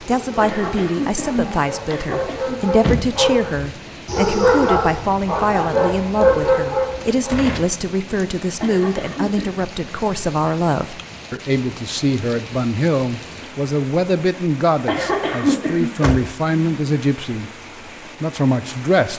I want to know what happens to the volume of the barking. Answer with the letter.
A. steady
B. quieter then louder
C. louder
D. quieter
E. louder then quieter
C.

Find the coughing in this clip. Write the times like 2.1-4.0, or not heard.
0.4-2.6, 8.6-9.6, 14.8-15.9.